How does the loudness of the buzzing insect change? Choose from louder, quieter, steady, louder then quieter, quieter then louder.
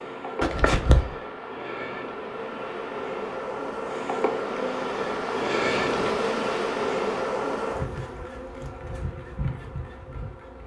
louder then quieter.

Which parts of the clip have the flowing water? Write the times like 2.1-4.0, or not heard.
not heard.